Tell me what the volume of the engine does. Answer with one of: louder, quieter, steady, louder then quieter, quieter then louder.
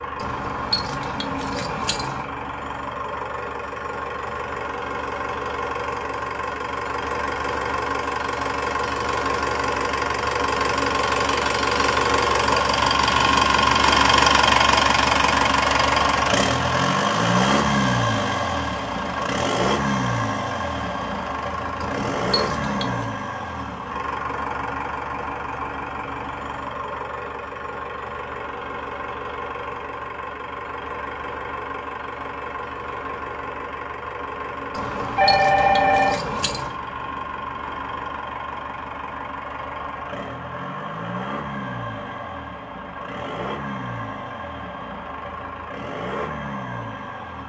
louder then quieter.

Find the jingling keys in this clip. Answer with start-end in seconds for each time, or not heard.
0.1-2.3, 21.8-23.1, 34.8-36.8.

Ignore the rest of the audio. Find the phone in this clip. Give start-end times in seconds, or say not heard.
35.1-36.2.